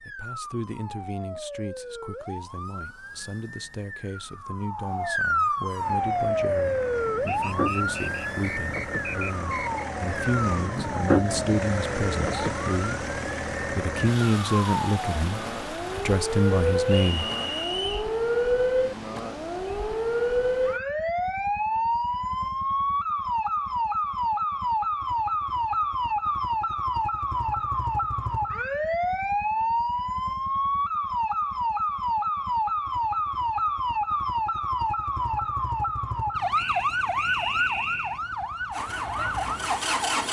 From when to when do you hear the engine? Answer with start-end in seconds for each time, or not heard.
5.8-17.9, 38.7-40.2.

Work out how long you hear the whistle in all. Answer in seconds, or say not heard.
5 s.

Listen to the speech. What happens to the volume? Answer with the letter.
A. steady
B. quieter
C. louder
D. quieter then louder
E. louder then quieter
C.